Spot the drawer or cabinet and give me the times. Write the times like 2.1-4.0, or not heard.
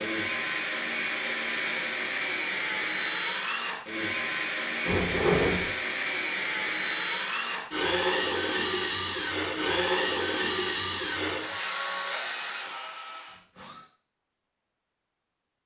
4.8-5.7.